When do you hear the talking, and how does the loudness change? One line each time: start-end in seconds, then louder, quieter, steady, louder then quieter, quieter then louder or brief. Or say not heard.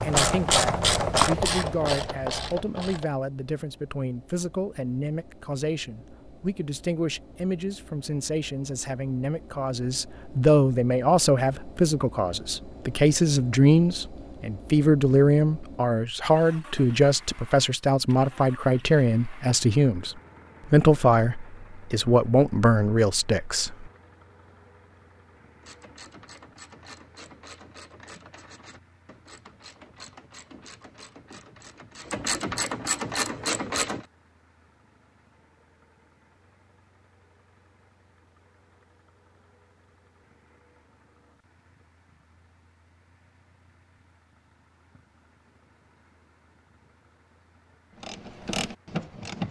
0.0-23.9 louder.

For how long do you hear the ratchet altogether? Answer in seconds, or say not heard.
13 s.